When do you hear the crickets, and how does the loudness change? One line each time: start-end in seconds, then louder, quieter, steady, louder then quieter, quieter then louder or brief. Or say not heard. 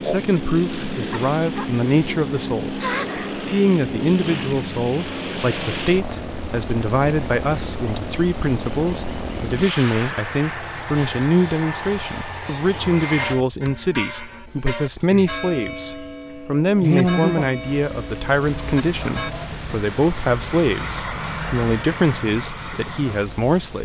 0.0-23.7 quieter then louder.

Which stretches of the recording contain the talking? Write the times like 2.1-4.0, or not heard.
0.0-23.7.